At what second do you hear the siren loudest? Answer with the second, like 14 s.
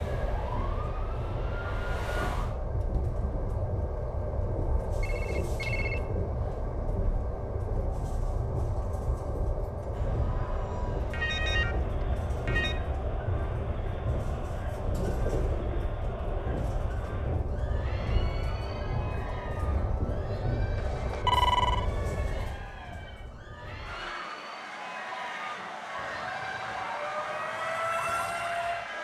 28 s.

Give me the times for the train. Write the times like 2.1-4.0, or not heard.
0.0-28.9.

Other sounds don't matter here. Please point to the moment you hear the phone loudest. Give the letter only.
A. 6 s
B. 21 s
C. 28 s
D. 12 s
B.